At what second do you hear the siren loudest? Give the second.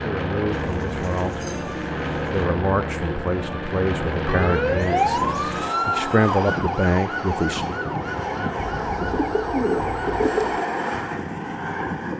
5 s.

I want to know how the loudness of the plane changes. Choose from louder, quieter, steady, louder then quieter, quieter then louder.
steady.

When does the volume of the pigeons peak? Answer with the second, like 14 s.
10 s.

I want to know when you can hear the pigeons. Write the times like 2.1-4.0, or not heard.
0.5-2.5, 4.8-6.2, 8.6-10.7.